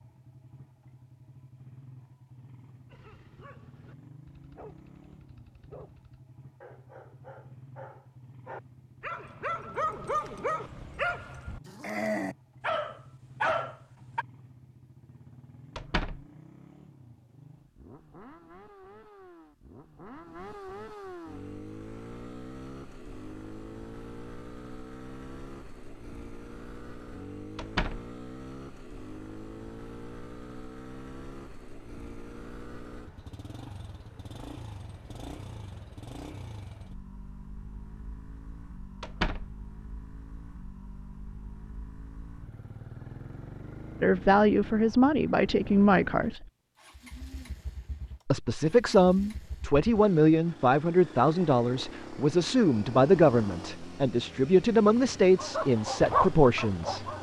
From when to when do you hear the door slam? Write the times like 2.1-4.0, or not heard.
15.8-16.2, 27.6-28.1, 39.0-39.5.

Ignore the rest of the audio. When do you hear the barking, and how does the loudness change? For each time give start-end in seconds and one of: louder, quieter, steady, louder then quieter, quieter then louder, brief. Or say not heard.
2.9-14.2 louder
55.4-57.1 brief.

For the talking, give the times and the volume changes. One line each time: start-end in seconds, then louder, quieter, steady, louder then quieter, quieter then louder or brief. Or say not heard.
44.0-46.5 brief
48.2-57.0 steady.